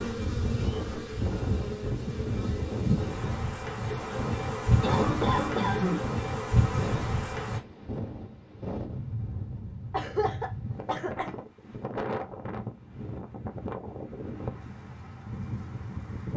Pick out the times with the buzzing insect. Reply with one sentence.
You can hear the buzzing insect from 0.0 to 7.6 s.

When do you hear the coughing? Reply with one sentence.
The coughing can be heard from 4.8 to 6.0 s and from 9.9 to 11.4 s.